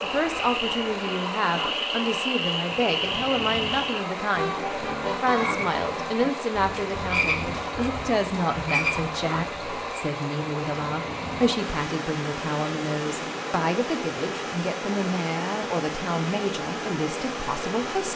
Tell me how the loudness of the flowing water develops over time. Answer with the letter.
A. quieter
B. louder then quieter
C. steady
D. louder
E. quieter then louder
C.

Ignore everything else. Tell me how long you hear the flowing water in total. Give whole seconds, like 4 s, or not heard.
18 s.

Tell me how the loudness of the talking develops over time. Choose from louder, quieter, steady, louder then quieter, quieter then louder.
steady.